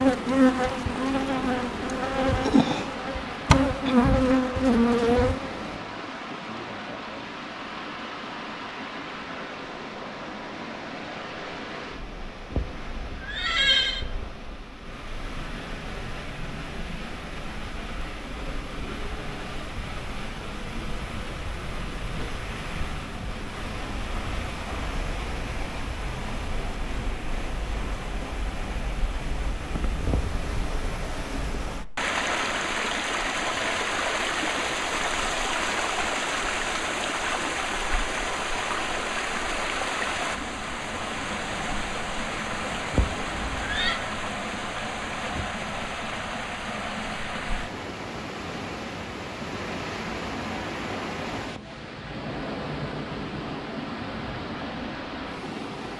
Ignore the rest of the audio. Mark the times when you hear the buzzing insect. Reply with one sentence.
You can hear the buzzing insect from 0.0 to 5.8 s.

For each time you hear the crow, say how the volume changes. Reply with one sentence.
You can't hear the crow here.